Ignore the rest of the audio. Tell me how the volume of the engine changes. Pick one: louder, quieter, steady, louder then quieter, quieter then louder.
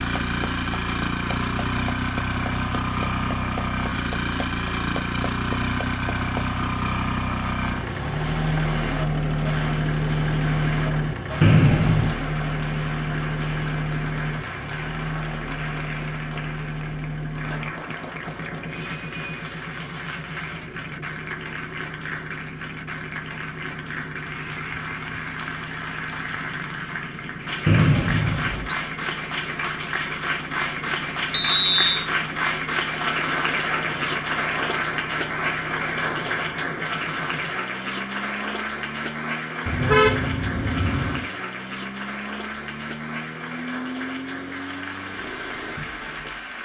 quieter.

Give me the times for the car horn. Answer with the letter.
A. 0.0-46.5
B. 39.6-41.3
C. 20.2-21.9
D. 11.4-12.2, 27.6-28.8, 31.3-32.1
B.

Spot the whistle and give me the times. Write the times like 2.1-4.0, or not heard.
11.4-12.2, 27.6-28.8, 31.3-32.1.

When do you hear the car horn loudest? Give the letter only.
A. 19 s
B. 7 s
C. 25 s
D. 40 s
D.